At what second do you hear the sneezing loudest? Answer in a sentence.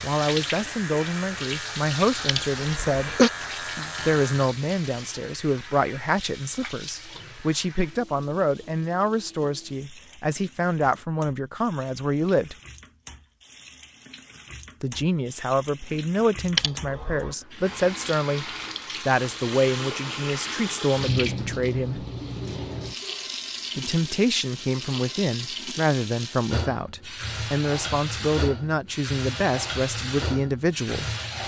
The loudest moment of the sneezing is at 3 seconds.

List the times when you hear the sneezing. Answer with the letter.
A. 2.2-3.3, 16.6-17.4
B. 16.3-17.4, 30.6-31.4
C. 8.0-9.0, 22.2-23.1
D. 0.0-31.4
A.